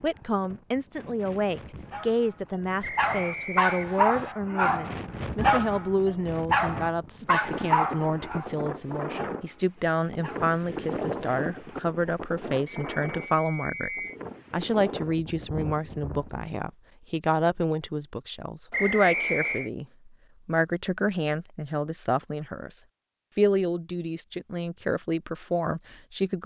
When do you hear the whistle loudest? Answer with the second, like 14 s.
19 s.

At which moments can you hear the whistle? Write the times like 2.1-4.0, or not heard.
2.8-4.3, 12.8-14.2, 18.7-19.7.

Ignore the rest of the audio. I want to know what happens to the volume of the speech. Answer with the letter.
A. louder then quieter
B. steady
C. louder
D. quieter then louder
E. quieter
B.